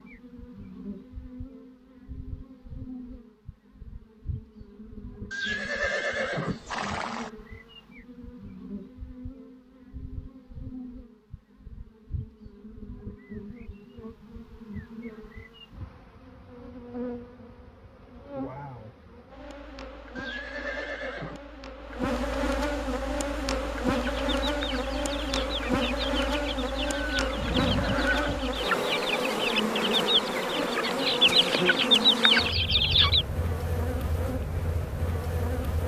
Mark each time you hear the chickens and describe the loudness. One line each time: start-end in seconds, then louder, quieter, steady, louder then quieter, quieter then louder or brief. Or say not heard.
23.9-33.2 louder.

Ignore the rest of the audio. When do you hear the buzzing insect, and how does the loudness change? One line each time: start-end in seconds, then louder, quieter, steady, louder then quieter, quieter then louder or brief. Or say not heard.
0.0-35.8 louder.